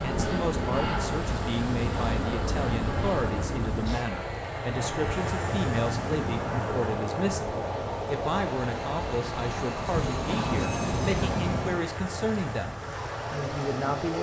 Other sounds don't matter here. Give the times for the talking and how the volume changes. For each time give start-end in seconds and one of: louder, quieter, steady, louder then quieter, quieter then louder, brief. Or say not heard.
0.0-14.1 steady.